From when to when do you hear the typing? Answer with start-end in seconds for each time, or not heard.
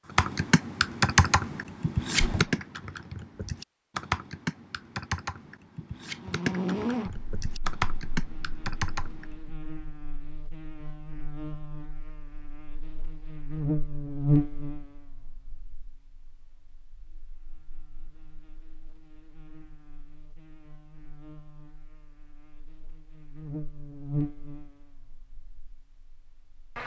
0.1-9.5.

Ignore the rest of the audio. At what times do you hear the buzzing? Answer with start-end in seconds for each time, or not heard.
6.2-26.8.